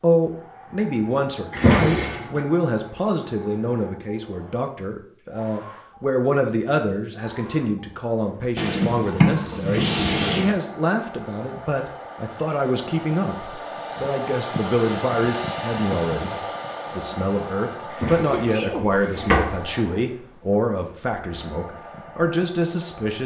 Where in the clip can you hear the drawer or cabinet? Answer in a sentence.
You can hear the drawer or cabinet from 1.5 to 2.4 s, from 8.6 to 10.6 s and from 18.0 to 19.6 s.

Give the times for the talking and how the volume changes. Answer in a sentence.
The talking can be heard from 0.0 to 23.2 s, at a steady volume.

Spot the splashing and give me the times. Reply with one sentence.
You can't hear the splashing here.